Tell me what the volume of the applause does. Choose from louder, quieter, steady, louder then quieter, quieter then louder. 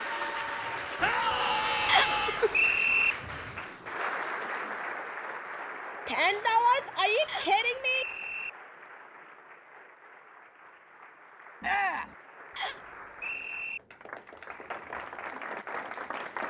quieter then louder.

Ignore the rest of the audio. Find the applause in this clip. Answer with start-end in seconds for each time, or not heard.
0.0-16.4.